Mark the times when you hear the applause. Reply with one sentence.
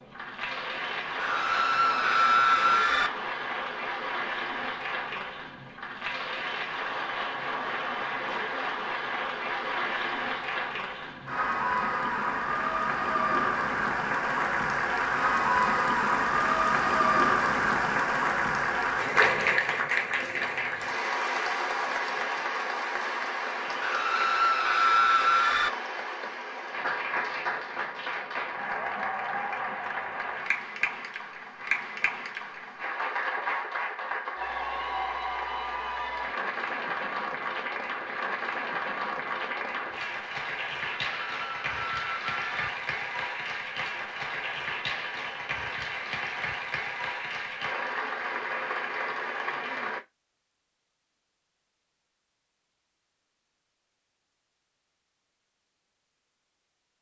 You can hear the applause from 0.0 to 50.0 s.